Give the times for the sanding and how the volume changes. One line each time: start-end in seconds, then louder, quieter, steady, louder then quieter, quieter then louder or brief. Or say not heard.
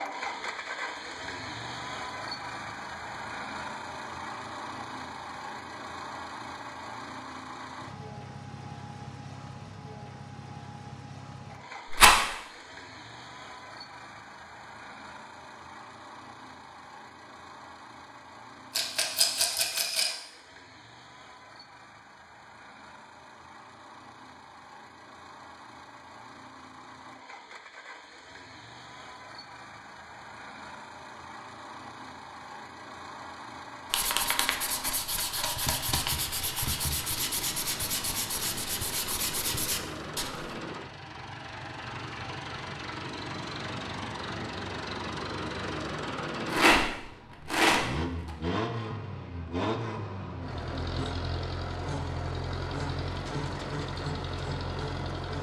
33.9-40.6 steady.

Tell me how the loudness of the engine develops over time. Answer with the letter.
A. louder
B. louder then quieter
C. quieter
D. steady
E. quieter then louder
E.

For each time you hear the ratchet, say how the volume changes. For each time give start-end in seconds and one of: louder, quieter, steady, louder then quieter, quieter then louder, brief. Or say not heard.
not heard.